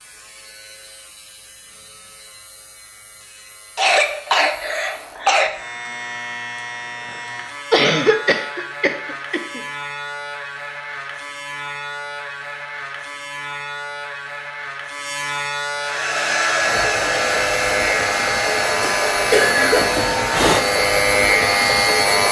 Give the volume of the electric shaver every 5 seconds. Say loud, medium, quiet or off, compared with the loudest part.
quiet, quiet, quiet, medium, loud.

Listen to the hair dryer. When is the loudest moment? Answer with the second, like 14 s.
17 s.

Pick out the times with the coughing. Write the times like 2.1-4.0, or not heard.
3.8-5.5, 7.7-9.6, 18.8-20.0.